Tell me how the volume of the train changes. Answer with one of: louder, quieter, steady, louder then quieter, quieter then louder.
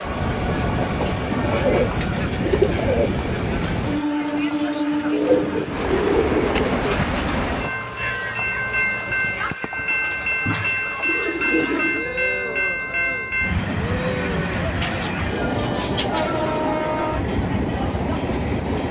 steady.